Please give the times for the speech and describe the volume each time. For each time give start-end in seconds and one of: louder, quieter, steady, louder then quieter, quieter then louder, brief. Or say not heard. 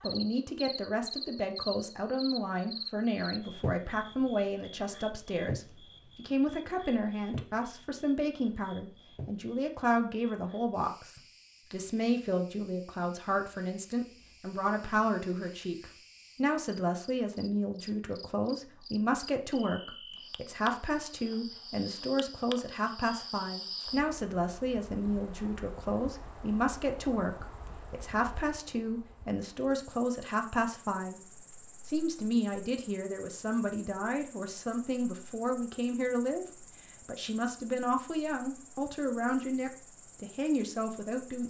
0.0-41.4 steady.